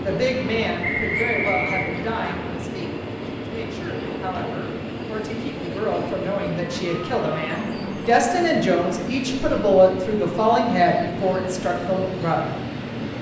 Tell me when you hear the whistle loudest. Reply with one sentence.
The volume of the whistle peaks at 1 second.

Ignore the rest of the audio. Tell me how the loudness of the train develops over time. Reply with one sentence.
The loudness of the train stays about the same.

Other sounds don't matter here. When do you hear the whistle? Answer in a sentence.
The whistle can be heard from 0.8 to 2.4 s.